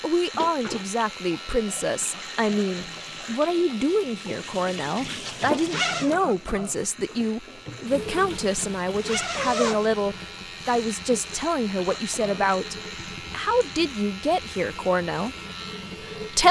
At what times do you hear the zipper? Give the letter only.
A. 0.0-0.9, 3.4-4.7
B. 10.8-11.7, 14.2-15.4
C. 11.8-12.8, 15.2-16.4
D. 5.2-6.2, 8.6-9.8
D.